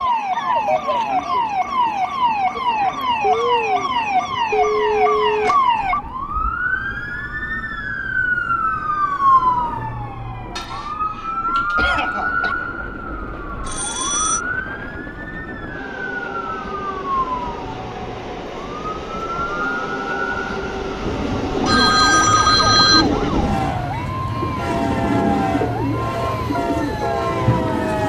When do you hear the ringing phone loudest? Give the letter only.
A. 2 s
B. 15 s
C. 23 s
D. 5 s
C.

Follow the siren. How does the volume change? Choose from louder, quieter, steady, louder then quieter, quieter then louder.
quieter.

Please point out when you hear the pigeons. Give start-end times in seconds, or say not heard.
21.0-28.0.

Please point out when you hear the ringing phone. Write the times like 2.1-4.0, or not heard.
4.5-6.3, 13.7-14.4, 21.6-23.5.